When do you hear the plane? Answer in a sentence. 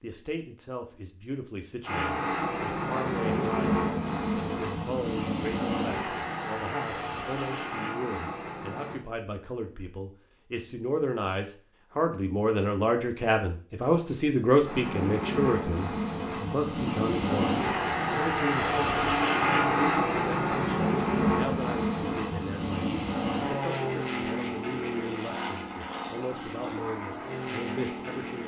You can hear the plane from 1.8 to 9.0 s and from 14.6 to 28.4 s.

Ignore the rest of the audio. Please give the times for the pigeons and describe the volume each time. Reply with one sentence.
The pigeons can't be heard in this clip.